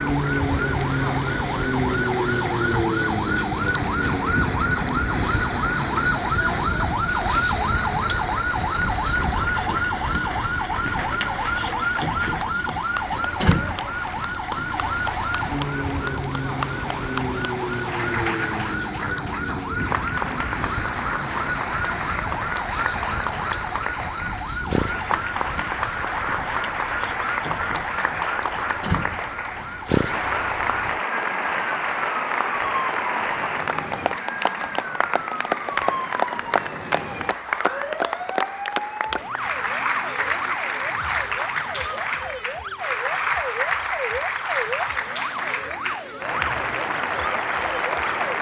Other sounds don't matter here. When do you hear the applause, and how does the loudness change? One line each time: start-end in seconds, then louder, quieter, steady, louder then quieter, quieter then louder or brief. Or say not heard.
0.0-48.3 louder.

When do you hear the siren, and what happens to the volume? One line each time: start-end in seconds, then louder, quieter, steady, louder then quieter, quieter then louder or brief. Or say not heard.
0.0-48.3 quieter.